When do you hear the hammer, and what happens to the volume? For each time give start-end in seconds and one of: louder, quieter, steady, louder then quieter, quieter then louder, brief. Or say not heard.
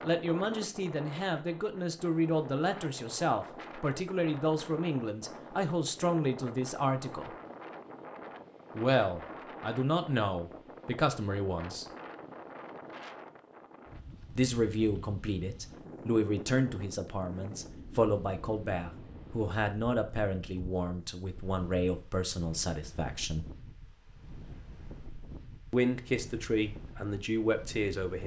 not heard.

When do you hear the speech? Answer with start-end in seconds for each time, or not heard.
0.0-7.3, 8.8-11.8, 14.3-23.4, 25.7-28.2.